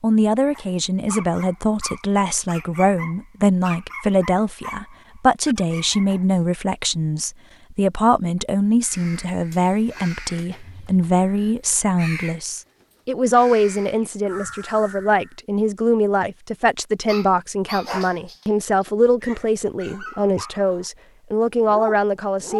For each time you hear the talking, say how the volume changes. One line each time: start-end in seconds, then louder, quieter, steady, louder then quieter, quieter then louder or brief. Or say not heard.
0.0-22.5 steady.